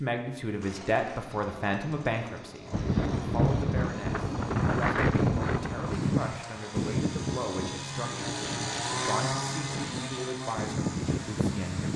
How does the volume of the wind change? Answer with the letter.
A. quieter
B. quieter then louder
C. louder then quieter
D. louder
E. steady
B.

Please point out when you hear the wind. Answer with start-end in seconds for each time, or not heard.
2.7-11.9.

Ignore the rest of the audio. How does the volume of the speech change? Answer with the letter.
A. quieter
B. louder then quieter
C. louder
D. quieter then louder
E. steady
A.